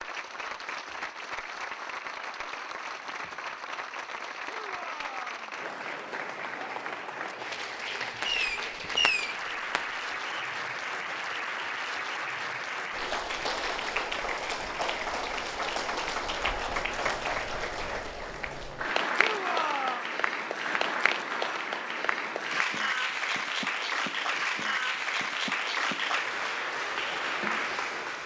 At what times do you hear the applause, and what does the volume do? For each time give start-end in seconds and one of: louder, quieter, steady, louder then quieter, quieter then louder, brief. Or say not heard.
0.0-28.2 louder.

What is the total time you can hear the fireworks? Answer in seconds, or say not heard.
2 s.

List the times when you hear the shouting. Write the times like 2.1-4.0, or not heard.
4.5-5.5, 19.1-20.1.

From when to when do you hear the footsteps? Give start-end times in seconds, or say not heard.
not heard.